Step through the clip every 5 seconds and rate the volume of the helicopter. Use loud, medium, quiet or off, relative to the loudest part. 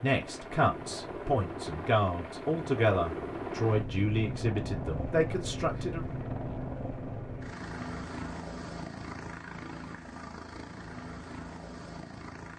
loud, loud, medium.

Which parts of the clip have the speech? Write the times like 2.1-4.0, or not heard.
0.0-6.0.